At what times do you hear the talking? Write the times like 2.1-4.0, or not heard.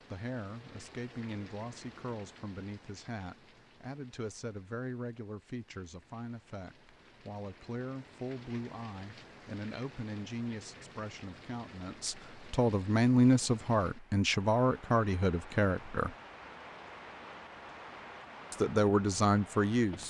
0.1-16.1, 18.5-20.0.